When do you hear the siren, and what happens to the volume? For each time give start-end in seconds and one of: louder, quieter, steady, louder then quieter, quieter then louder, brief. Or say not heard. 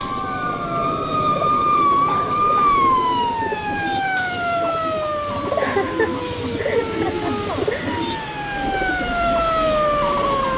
0.0-10.5 quieter then louder.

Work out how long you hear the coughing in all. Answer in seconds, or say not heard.
3 s.